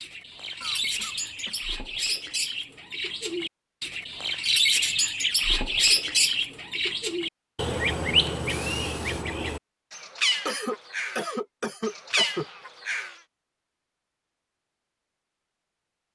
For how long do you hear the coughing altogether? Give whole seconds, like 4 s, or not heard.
3 s.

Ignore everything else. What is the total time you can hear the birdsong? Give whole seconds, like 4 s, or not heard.
13 s.